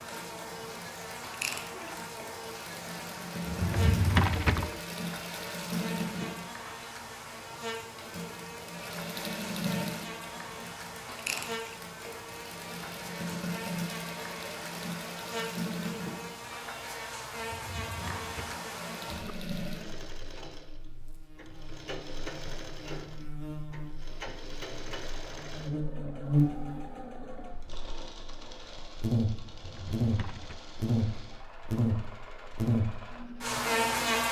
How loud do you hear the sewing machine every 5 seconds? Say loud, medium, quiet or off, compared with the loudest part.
loud, loud, loud, loud, medium, medium, medium.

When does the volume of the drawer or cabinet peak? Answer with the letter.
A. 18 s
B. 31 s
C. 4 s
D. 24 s
C.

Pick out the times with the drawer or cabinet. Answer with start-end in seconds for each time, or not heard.
3.4-4.8, 17.4-19.4, 29.5-30.6.